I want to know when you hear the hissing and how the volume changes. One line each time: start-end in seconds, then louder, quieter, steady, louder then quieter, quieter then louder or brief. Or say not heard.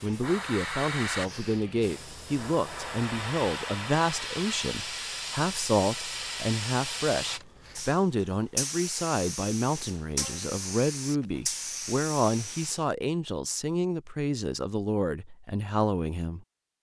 0.0-12.8 steady.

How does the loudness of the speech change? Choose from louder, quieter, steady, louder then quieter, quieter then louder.
steady.